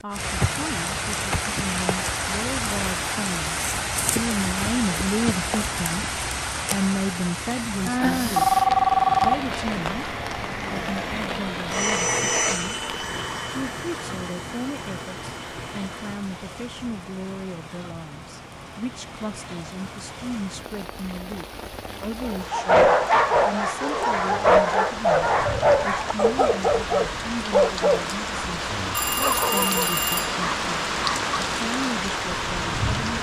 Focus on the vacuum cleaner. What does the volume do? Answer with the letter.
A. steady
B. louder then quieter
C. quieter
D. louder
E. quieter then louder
B.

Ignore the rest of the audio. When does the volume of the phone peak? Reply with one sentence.
The volume of the phone peaks at 9 seconds.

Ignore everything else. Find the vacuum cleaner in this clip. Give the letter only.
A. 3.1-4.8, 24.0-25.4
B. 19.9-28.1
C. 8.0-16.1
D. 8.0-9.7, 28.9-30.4
C.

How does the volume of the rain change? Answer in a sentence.
The loudness of the rain goes down, then up.